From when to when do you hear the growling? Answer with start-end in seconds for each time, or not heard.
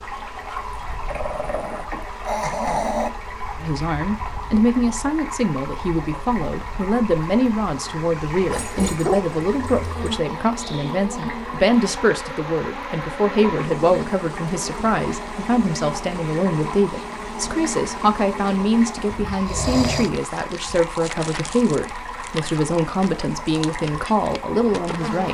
1.1-3.1, 8.5-10.2, 19.4-20.1.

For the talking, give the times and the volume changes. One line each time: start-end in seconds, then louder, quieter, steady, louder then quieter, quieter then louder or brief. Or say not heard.
3.6-25.2 steady.